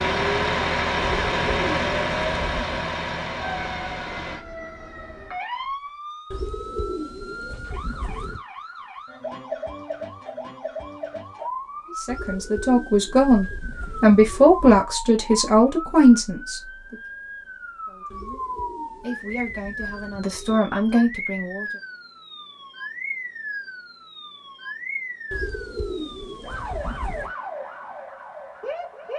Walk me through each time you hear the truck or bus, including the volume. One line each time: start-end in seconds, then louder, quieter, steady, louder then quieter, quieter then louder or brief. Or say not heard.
0.0-4.5 quieter.